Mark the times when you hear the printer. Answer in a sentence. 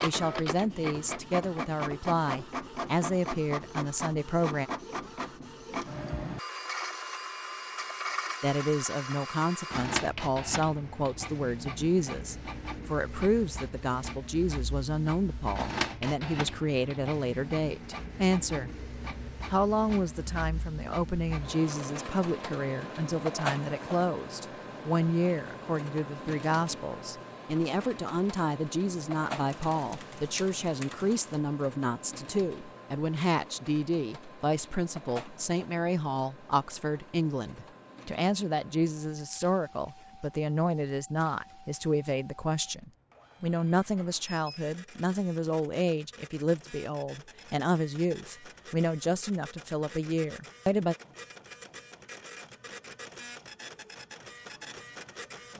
You can hear the printer from 0.0 to 55.5 s.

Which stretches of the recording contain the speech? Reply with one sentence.
The speech can be heard from 0.0 to 4.7 s, from 8.4 to 18.7 s and from 19.5 to 51.0 s.